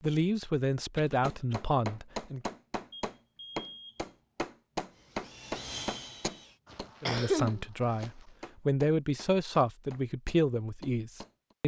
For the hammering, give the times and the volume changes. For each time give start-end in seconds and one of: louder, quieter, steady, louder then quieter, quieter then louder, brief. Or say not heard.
1.2-11.6 quieter.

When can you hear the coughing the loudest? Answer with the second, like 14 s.
7 s.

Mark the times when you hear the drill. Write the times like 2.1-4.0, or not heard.
4.9-6.6.